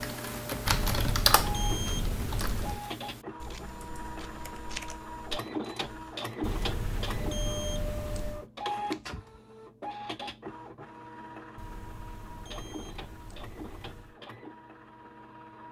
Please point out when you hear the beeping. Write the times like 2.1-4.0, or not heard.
0.7-2.8, 6.4-8.4, 11.6-14.2.